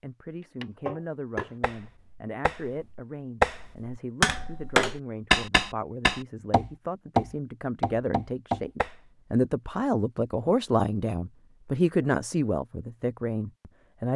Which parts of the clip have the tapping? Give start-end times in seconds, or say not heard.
0.6-8.9.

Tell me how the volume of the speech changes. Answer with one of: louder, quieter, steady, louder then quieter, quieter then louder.
louder.